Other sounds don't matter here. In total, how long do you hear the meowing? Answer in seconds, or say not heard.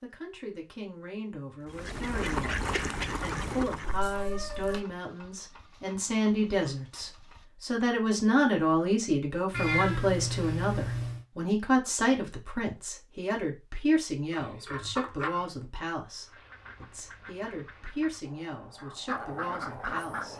4 s.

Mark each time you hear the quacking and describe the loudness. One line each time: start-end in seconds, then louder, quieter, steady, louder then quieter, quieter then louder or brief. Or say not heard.
1.6-4.0 brief
16.1-20.3 louder.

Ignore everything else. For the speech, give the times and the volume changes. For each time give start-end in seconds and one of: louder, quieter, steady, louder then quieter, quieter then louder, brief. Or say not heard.
0.0-20.3 louder then quieter.